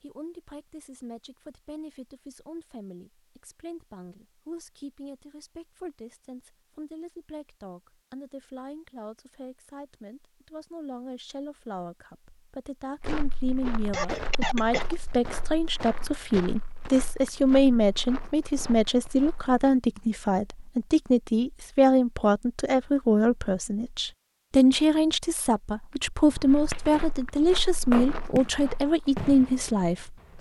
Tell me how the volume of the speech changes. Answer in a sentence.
The loudness of the speech goes up.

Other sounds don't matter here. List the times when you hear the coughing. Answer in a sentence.
The coughing can be heard from 13.8 to 14.9 s.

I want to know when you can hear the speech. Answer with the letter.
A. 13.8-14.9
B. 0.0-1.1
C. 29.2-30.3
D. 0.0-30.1
D.